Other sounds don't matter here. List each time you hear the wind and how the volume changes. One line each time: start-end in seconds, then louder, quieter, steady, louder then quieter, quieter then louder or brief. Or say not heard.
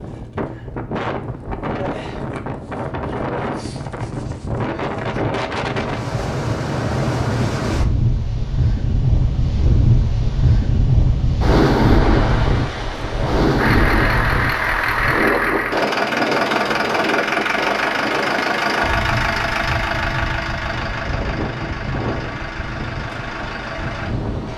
0.0-24.5 louder then quieter.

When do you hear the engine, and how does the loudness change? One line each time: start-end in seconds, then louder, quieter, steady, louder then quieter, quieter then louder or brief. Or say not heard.
13.6-24.5 quieter.